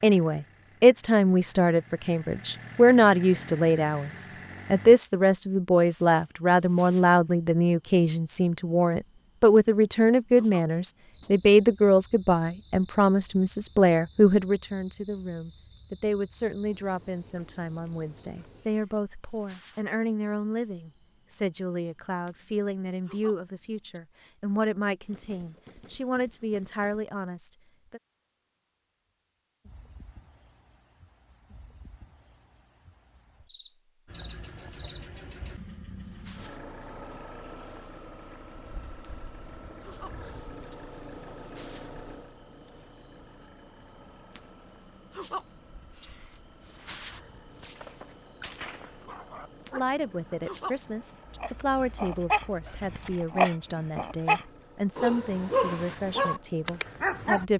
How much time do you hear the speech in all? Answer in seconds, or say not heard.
36 s.